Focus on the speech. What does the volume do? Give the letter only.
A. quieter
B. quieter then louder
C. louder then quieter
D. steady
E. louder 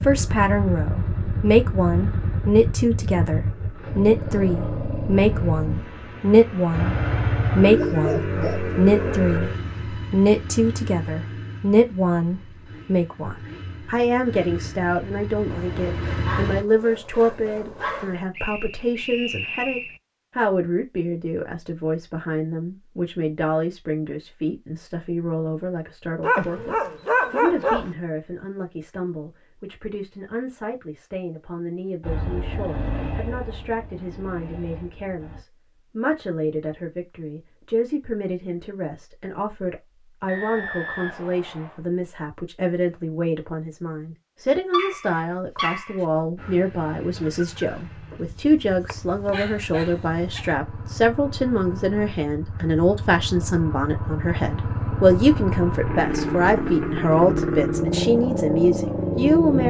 B.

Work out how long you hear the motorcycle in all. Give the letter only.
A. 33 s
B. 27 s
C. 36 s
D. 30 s
A.